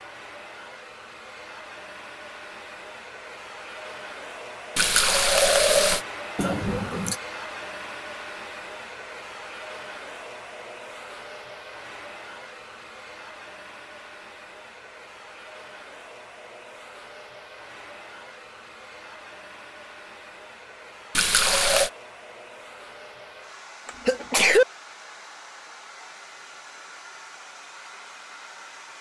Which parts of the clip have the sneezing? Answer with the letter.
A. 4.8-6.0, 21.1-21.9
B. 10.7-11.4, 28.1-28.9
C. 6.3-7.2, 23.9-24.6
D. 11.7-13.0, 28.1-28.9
C.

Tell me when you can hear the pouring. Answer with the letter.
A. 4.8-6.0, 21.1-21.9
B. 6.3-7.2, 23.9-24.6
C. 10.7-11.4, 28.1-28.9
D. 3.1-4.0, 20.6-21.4
A.